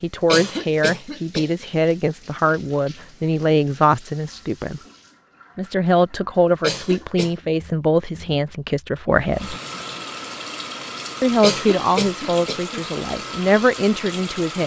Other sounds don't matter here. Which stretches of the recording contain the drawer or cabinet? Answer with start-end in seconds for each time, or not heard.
not heard.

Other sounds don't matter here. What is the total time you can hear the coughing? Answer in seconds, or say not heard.
3 s.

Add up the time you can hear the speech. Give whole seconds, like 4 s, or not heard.
12 s.